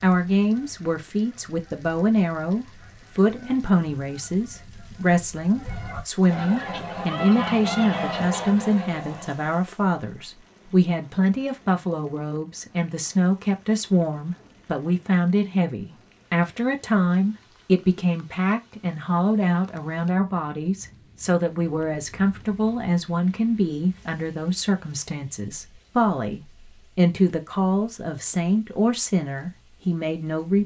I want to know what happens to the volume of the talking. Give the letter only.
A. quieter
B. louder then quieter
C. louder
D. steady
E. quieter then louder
D.